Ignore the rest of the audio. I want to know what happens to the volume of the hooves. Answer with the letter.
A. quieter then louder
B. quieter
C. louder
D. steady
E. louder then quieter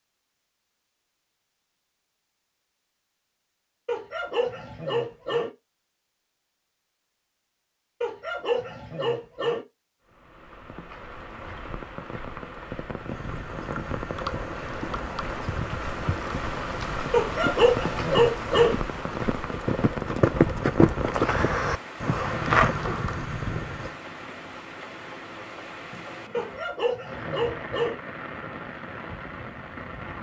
C.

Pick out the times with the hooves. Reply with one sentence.
You can hear the hooves from 13.1 to 23.9 s.